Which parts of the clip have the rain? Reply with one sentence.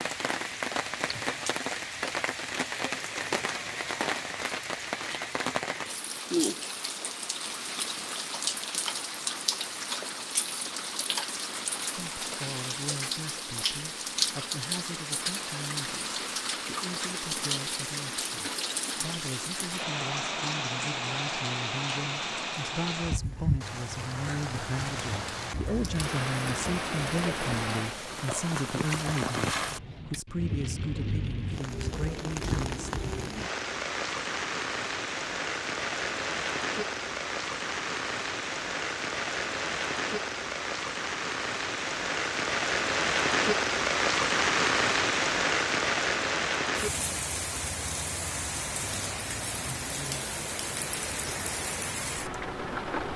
The rain can be heard from 0.0 to 53.1 s.